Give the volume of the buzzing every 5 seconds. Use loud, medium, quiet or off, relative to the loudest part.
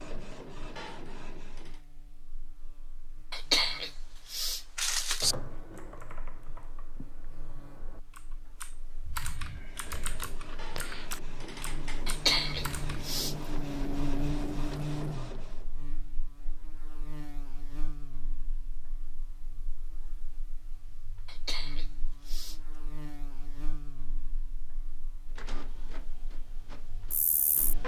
quiet, quiet, loud, medium, quiet, quiet.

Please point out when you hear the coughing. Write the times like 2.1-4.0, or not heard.
3.3-5.3, 12.1-13.3, 21.2-22.6.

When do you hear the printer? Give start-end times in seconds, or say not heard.
0.0-1.8, 9.4-15.7, 25.4-27.8.